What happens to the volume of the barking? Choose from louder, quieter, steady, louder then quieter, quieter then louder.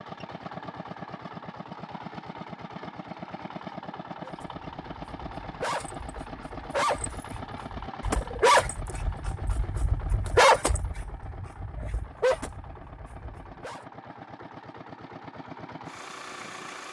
louder then quieter.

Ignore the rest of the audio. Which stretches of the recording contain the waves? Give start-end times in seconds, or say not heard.
not heard.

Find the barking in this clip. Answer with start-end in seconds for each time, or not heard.
4.2-13.8.